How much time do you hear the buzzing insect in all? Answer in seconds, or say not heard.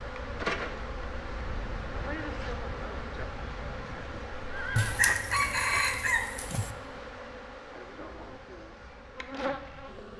10 s.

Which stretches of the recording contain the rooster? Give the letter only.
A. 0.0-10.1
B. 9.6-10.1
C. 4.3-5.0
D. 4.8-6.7
D.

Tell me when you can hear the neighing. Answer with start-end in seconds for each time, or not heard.
4.3-5.0.